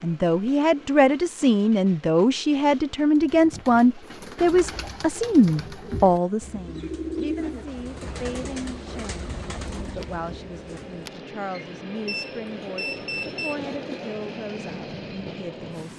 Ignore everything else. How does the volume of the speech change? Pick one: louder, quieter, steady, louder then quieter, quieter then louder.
quieter.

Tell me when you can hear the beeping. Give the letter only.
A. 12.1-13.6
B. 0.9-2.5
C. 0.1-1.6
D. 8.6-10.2
A.